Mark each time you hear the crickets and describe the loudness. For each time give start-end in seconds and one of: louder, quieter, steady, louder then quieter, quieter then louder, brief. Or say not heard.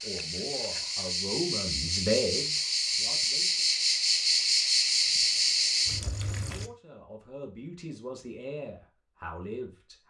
0.0-6.7 louder.